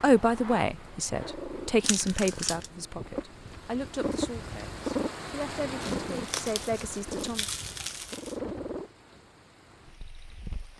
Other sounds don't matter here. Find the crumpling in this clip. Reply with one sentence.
The crumpling can be heard from 1.8 to 2.7 s and from 5.8 to 8.3 s.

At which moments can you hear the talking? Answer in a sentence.
The talking can be heard from 0.0 to 7.5 s.